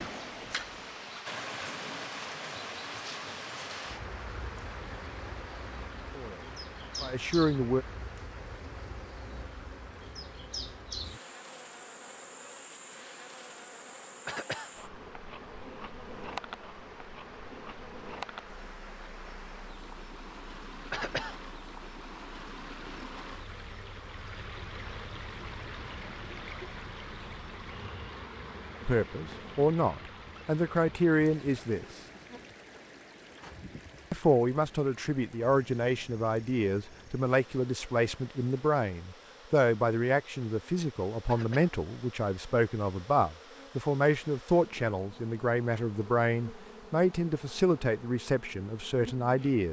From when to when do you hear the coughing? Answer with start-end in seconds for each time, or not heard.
14.2-14.7, 20.9-21.4, 41.2-41.8.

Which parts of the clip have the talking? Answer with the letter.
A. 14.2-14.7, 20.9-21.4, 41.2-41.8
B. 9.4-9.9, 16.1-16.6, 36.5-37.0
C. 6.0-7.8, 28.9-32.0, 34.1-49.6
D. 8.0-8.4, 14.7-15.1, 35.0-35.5
C.